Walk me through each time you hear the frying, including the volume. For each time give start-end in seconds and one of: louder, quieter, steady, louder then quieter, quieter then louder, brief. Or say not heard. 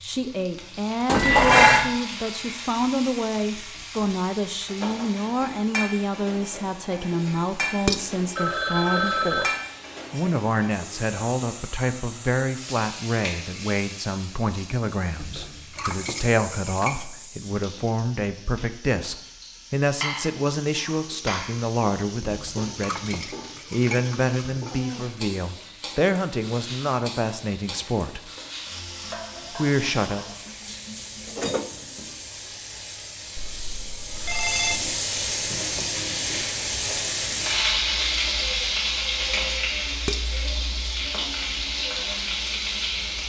0.0-43.2 louder.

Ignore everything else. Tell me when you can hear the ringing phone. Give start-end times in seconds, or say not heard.
8.3-9.6, 33.4-35.0.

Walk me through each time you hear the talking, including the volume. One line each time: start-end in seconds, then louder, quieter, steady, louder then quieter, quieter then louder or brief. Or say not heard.
0.0-9.5 steady
10.1-28.2 steady
29.5-30.2 brief.